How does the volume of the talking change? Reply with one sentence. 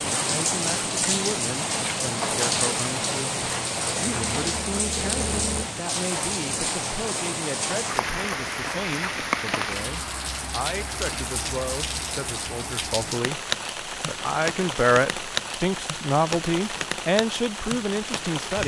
The volume of the talking goes up.